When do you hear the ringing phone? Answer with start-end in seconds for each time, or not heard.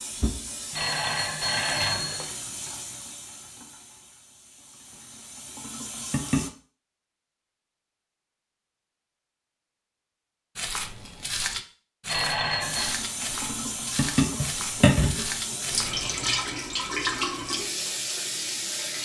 0.7-2.4, 12.1-13.0.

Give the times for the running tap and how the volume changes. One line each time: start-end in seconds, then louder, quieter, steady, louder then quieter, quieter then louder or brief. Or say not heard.
0.0-6.5 quieter then louder
12.6-19.0 louder then quieter.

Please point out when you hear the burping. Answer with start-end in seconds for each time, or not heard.
not heard.